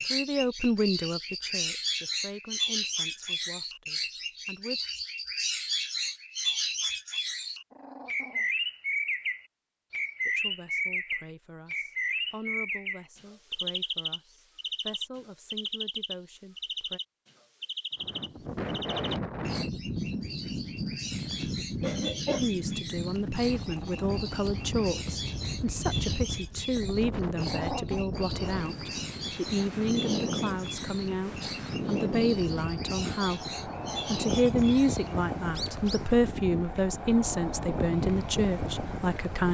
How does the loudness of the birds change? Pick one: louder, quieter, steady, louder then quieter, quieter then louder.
quieter.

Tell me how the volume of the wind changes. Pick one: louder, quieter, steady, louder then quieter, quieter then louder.
steady.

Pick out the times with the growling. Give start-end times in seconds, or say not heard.
7.7-8.5, 23.4-24.8, 27.4-28.1.